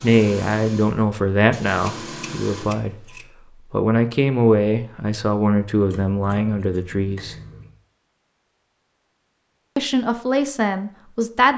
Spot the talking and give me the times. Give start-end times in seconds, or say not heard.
0.0-7.3, 9.8-11.5.